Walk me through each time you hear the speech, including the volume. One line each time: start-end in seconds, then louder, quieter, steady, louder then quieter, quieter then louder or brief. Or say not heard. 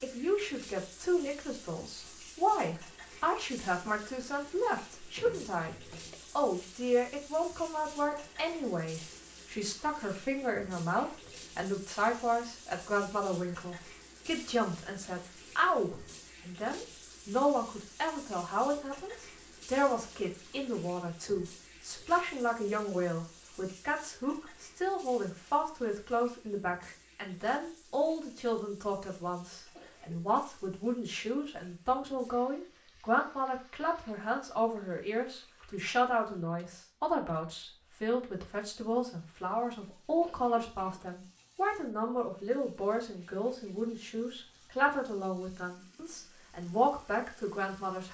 0.0-48.1 steady.